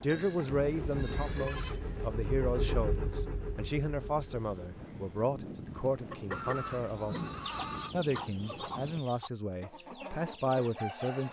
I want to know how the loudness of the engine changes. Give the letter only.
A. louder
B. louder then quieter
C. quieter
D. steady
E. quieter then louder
B.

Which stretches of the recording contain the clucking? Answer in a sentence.
The clucking can be heard from 6.1 to 11.2 s.